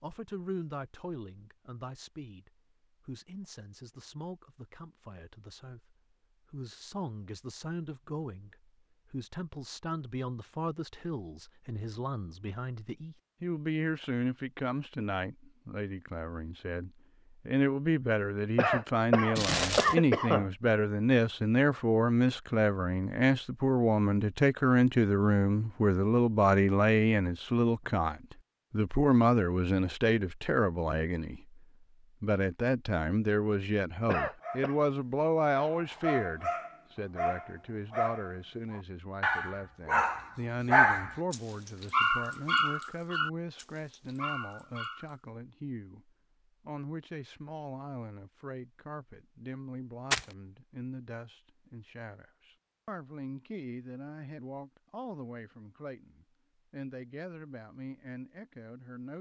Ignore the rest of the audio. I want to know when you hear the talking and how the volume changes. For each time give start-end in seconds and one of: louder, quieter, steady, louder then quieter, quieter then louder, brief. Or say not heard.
0.0-31.6 louder
32.2-59.1 quieter.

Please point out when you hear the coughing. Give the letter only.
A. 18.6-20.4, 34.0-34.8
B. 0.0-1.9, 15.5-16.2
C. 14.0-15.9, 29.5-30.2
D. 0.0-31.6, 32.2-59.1
A.